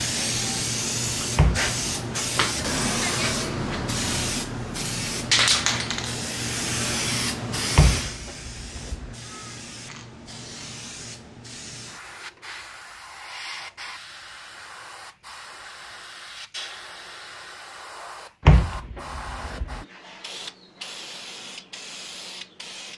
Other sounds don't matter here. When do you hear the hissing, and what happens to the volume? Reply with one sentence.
You can hear the hissing from 0.0 to 22.9 s, getting quieter.